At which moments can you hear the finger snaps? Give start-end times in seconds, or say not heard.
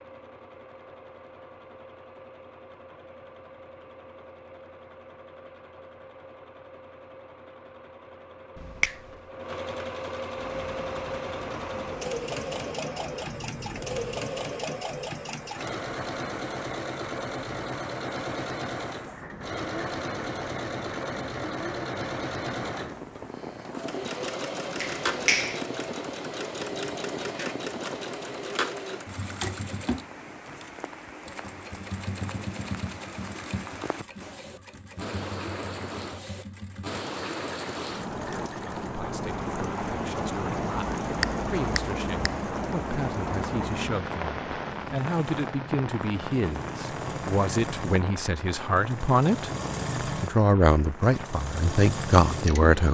8.6-9.0, 24.8-25.6, 41.2-42.8.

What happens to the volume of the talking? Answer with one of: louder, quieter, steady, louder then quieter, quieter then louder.
louder.